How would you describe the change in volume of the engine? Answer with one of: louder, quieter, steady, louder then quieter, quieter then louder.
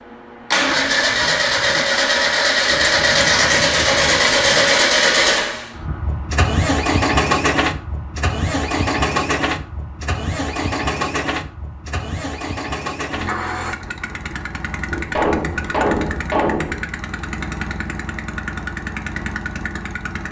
quieter.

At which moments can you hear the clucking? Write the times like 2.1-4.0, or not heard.
not heard.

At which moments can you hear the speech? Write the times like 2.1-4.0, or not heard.
not heard.